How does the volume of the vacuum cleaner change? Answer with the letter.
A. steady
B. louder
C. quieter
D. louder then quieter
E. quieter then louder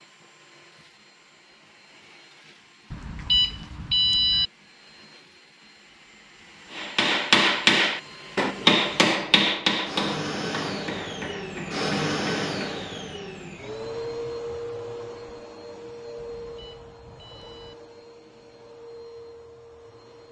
D.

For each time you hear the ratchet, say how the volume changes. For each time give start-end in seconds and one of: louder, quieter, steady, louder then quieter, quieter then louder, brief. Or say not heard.
not heard.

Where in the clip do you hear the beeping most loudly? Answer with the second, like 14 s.
4 s.